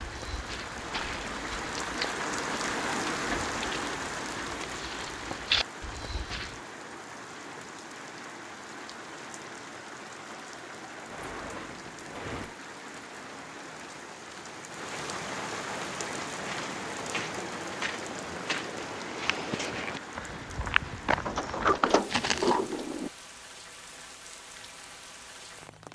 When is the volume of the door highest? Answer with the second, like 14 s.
22 s.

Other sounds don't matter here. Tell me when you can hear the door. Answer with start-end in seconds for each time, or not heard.
2.7-3.6, 11.1-12.6, 21.2-23.1.